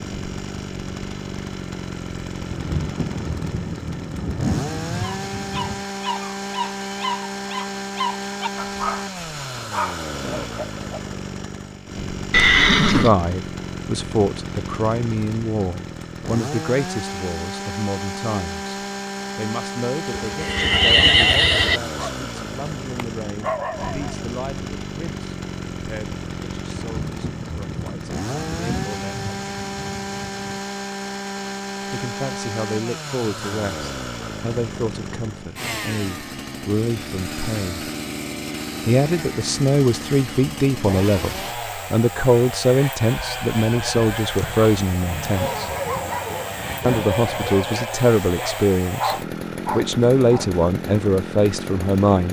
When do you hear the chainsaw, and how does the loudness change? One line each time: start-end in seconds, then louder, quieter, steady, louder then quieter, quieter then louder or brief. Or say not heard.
0.0-52.2 steady.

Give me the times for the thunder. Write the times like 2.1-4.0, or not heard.
2.5-5.8, 26.9-30.6, 45.0-47.6.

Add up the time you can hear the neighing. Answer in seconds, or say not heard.
4 s.